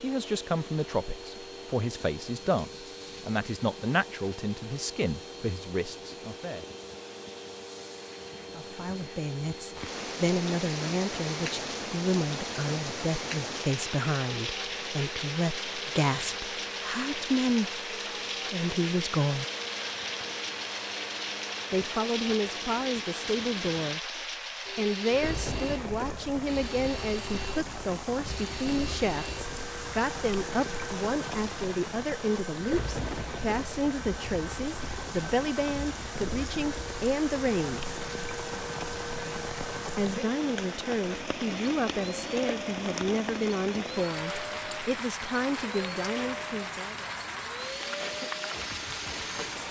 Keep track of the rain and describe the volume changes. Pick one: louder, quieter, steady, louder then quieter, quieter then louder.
steady.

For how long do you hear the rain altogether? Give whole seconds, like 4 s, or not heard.
40 s.